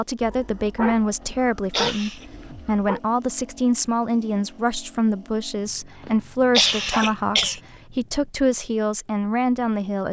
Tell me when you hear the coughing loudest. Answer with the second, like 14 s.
7 s.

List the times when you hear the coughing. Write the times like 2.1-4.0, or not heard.
1.2-2.2, 6.0-7.6.